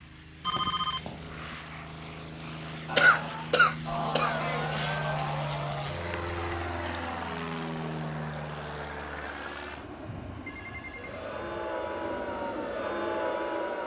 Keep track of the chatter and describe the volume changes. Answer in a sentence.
The volume of the chatter goes down, then up.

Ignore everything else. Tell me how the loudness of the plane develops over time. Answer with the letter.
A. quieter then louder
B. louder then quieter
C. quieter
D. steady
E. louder
B.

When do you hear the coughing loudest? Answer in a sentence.
The volume of the coughing peaks at 3 seconds.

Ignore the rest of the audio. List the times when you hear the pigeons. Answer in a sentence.
You can't hear the pigeons here.